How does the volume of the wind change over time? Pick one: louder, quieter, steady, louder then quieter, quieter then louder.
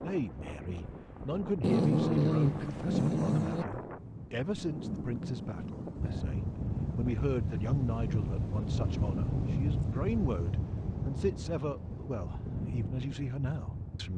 louder then quieter.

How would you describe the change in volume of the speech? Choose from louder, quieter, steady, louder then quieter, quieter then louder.
steady.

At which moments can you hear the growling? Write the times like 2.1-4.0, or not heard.
1.6-3.6.